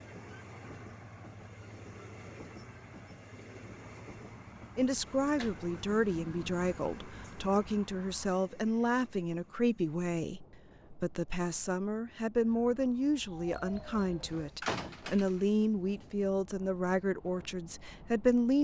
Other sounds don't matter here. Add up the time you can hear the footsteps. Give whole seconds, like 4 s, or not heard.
not heard.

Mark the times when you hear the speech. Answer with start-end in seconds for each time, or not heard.
4.8-18.5.